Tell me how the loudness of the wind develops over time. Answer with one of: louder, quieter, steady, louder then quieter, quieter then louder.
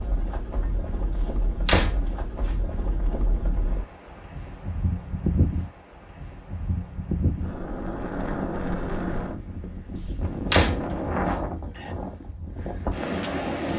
louder.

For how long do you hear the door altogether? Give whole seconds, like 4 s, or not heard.
3 s.